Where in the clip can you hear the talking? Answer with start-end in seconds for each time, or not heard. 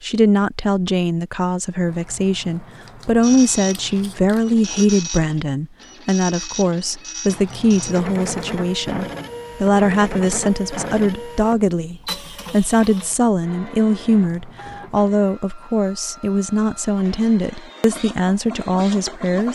0.0-19.4.